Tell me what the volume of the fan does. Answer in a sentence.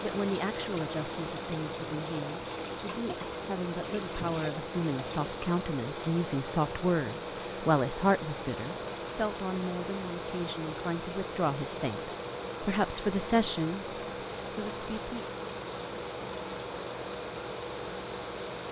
The volume of the fan stays about the same.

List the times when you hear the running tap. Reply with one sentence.
The running tap can be heard from 0.0 to 5.5 s.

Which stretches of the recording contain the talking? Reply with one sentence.
You can hear the talking from 0.0 to 15.3 s.